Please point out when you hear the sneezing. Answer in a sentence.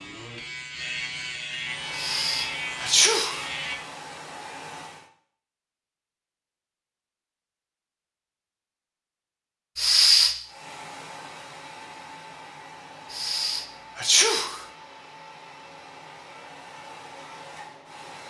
The sneezing can be heard from 1.9 to 3.5 s, from 9.8 to 10.3 s and from 13.1 to 14.6 s.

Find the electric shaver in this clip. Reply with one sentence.
You can hear the electric shaver from 0.0 to 3.8 s.